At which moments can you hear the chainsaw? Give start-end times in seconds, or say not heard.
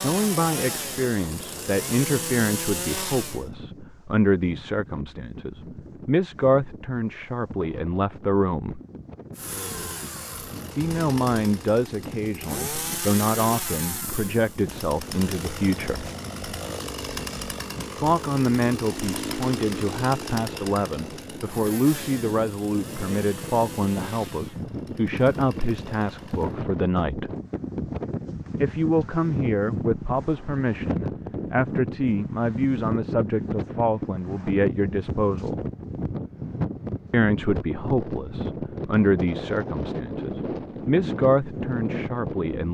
0.0-3.5, 9.3-26.6.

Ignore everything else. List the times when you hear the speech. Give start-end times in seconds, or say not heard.
0.0-8.8, 10.8-16.1, 17.9-27.3, 28.6-35.6, 37.1-42.6.